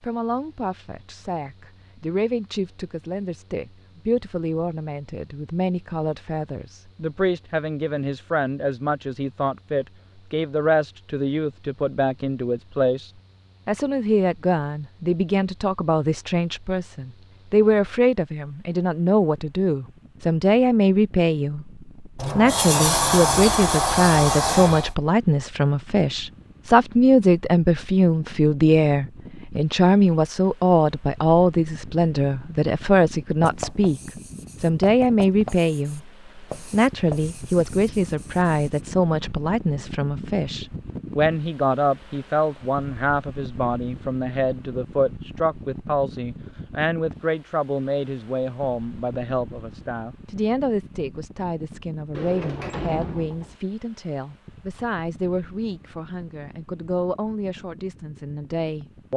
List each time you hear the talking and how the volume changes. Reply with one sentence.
You can hear the talking from 0.0 to 59.1 s, getting louder then quieter.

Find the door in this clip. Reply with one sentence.
You can hear the door from 22.1 to 24.9 s and from 52.1 to 53.6 s.